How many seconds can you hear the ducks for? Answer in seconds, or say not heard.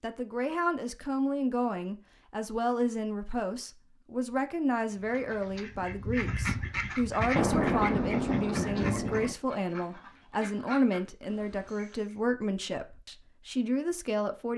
7 s.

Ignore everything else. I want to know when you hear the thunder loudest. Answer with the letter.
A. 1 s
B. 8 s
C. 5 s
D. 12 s
B.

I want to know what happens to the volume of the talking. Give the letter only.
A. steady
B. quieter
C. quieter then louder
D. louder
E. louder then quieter
A.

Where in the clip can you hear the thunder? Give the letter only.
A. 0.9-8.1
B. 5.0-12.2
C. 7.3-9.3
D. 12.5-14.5
C.